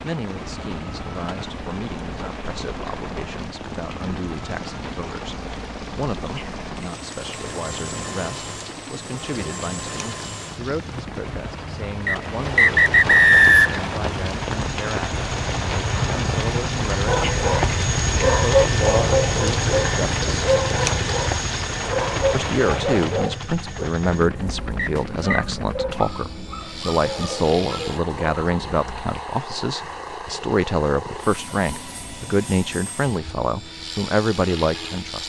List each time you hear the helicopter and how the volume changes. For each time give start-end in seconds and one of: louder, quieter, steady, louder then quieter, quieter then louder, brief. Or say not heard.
0.0-35.2 louder then quieter.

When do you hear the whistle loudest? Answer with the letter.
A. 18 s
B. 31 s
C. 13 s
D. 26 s
C.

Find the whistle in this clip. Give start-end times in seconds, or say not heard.
12.1-13.8, 24.9-25.4.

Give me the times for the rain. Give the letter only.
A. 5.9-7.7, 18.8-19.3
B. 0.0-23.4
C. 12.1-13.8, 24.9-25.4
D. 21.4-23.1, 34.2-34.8
B.